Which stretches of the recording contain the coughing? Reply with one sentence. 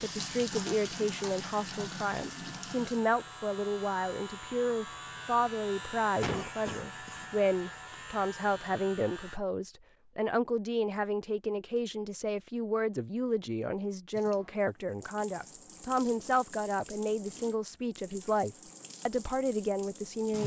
The coughing can be heard from 6.2 to 7.2 s.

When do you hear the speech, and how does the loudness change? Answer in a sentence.
You can hear the speech from 0.0 to 20.4 s, at a steady volume.